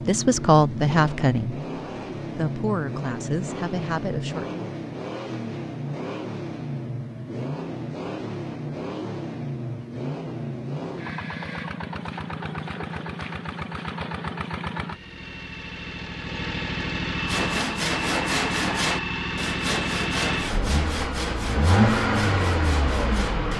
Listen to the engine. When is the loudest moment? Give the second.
22 s.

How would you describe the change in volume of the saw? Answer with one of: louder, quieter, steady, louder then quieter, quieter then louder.
quieter.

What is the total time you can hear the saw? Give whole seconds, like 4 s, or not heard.
6 s.